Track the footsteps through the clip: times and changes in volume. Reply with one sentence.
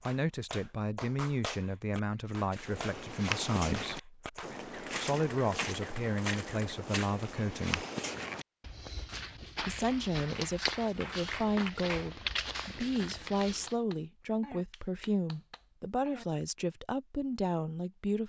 You can hear the footsteps from 2.5 to 13.8 s, at a steady volume.